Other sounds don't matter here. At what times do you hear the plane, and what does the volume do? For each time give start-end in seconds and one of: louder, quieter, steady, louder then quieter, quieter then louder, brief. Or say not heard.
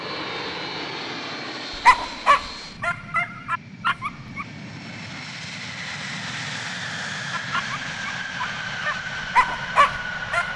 0.0-10.5 quieter then louder.